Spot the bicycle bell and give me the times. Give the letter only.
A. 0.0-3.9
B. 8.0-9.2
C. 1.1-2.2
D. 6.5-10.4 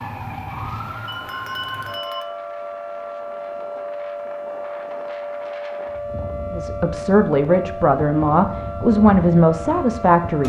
C.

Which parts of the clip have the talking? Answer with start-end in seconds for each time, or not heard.
6.5-10.4.